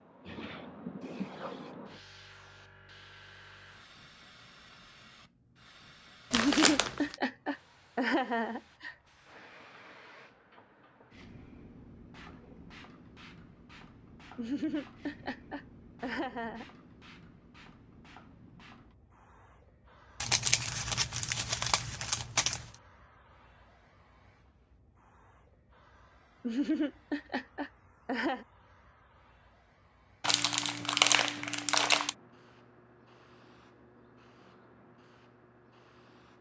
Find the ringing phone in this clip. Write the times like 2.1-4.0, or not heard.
not heard.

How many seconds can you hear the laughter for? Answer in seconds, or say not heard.
7 s.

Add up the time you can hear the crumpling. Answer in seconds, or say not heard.
5 s.